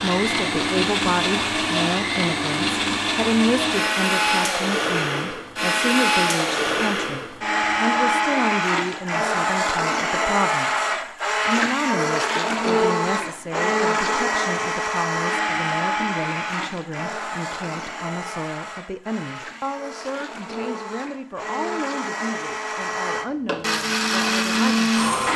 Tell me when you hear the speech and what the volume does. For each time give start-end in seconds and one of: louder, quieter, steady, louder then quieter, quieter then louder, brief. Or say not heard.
0.0-25.2 quieter.